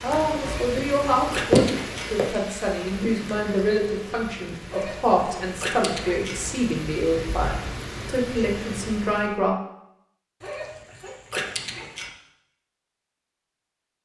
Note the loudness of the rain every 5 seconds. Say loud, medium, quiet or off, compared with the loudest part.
loud, medium, off.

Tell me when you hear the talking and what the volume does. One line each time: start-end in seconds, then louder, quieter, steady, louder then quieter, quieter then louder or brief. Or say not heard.
0.0-9.6 steady.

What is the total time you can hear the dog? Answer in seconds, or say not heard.
5 s.